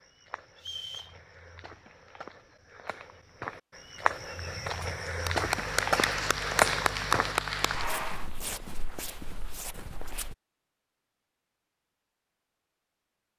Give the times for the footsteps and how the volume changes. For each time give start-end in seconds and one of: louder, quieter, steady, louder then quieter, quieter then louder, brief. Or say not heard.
0.0-10.3 louder then quieter.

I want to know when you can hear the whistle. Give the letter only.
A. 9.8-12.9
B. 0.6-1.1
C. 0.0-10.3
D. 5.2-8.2
B.